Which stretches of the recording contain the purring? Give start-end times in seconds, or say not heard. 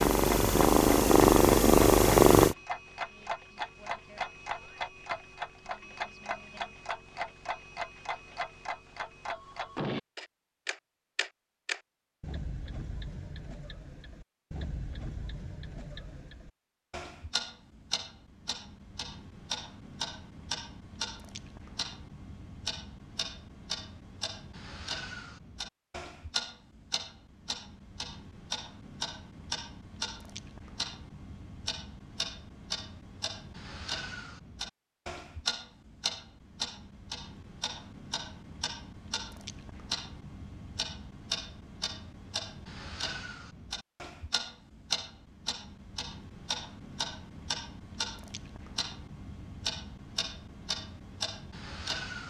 0.0-2.5.